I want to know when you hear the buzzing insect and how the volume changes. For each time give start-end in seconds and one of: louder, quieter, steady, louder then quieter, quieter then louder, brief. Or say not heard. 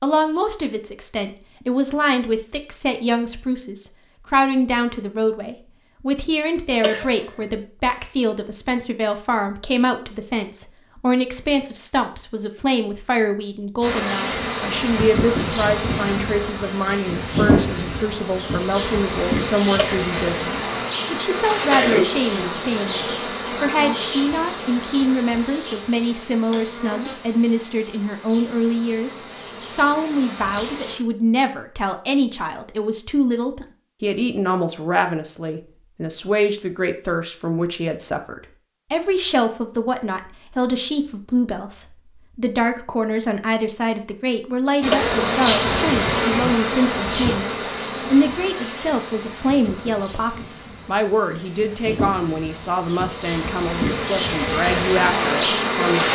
13.8-30.9 quieter
44.8-56.1 quieter then louder.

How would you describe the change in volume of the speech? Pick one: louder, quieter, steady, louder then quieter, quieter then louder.
steady.